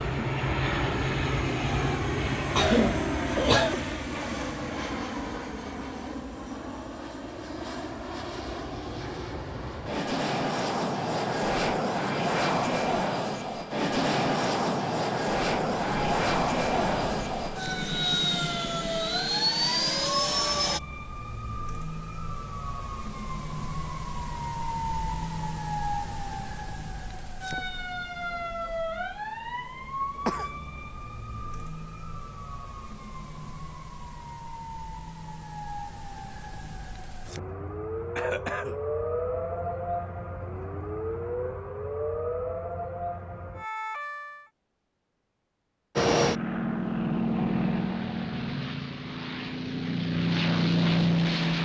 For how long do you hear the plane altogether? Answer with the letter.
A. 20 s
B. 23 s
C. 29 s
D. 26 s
D.